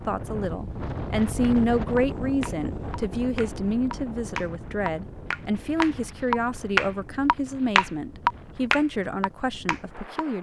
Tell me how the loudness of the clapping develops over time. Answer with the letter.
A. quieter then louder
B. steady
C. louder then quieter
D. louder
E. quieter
C.